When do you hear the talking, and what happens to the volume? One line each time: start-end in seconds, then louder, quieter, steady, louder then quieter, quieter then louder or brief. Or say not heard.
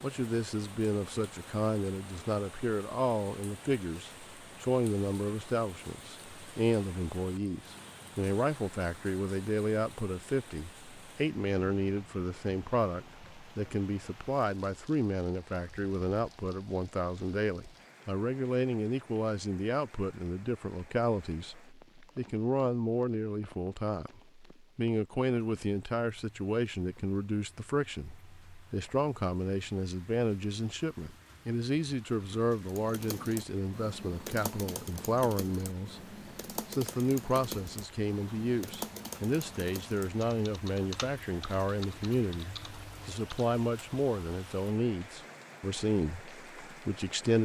0.0-47.4 steady.